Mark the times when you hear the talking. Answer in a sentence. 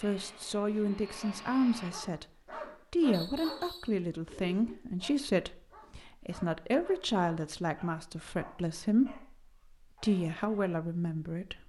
You can hear the talking from 0.0 to 2.2 s, from 2.9 to 9.3 s and from 10.0 to 11.6 s.